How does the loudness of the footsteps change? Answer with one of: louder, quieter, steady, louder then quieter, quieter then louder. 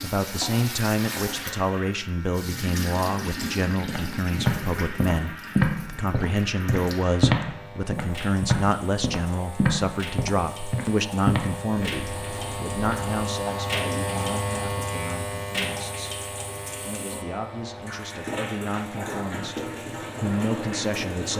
quieter.